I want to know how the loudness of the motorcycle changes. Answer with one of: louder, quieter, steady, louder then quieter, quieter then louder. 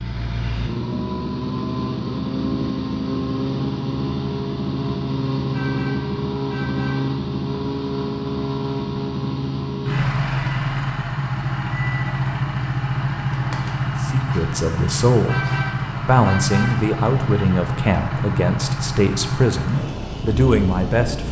steady.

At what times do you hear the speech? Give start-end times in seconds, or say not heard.
14.0-15.4, 16.1-21.2.